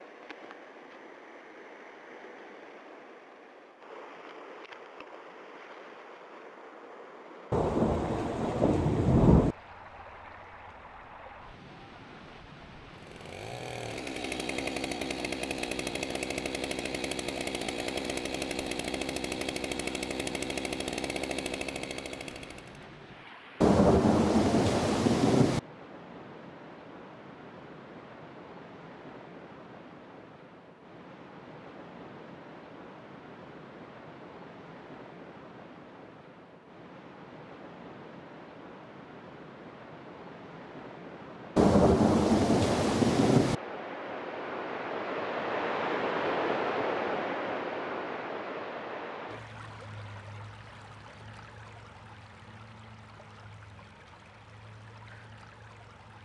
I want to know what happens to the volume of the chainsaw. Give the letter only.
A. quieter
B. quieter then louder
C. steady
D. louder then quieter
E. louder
C.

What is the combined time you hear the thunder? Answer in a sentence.
You can hear the thunder for 6 seconds altogether.